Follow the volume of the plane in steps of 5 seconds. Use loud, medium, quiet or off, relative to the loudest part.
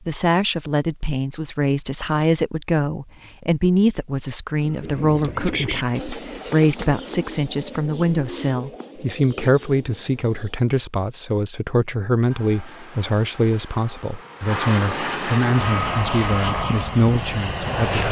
off, off, medium, loud.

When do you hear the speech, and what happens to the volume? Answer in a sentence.
You can hear the speech from 0.1 to 18.0 s, at a steady volume.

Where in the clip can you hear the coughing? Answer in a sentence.
You can't hear the coughing here.